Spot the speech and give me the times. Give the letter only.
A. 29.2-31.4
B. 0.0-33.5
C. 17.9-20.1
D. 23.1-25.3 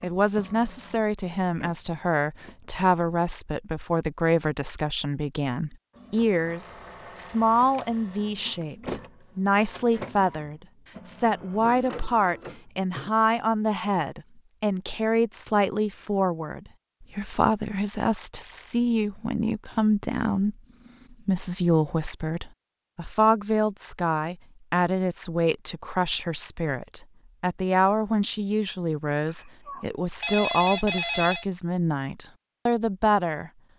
B.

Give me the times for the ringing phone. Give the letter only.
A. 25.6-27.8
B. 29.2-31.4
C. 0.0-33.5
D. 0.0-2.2
B.